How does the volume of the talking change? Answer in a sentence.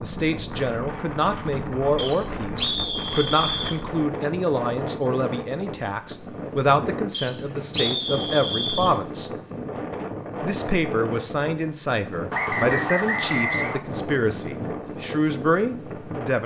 The loudness of the talking stays about the same.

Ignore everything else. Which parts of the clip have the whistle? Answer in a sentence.
You can hear the whistle from 1.9 to 3.8 s, from 7.1 to 8.9 s and from 12.3 to 13.8 s.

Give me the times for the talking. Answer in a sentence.
You can hear the talking from 0.0 to 9.3 s and from 10.4 to 16.4 s.